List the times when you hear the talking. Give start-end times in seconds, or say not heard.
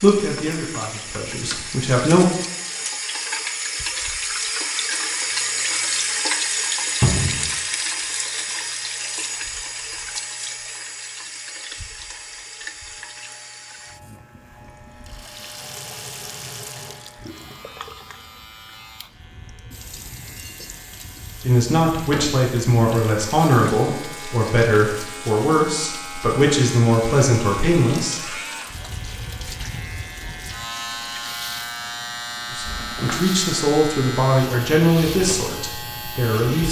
0.0-2.3, 21.4-28.3, 32.5-36.6.